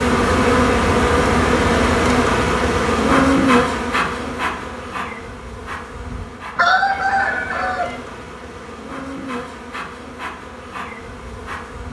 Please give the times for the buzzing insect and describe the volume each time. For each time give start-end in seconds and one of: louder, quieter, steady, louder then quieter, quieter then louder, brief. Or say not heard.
0.0-11.8 quieter.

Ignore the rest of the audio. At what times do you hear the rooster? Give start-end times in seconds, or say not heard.
6.5-8.0.